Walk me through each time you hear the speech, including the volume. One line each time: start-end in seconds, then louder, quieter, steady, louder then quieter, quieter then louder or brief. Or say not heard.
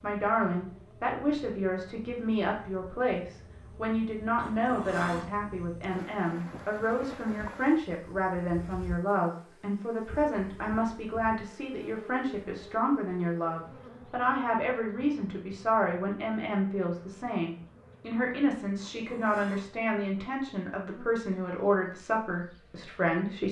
0.0-23.4 steady.